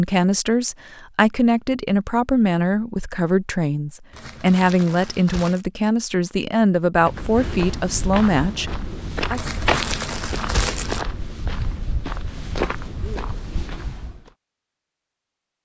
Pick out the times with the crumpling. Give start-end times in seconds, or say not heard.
4.1-5.7, 9.3-11.1.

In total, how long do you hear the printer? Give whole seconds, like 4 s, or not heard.
not heard.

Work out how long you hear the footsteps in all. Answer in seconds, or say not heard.
7 s.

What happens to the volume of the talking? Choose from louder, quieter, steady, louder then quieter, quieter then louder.
steady.